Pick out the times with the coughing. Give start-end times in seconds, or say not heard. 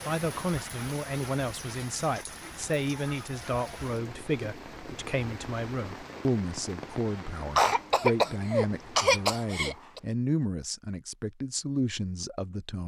7.5-10.0.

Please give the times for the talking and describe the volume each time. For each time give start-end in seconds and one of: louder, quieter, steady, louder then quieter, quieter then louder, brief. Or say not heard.
0.1-12.8 steady.